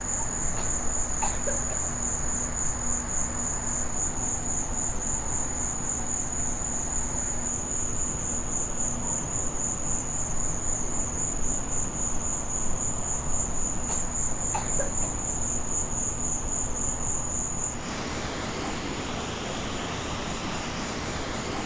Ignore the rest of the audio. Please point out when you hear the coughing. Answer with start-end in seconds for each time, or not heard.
0.6-1.9, 13.8-15.1.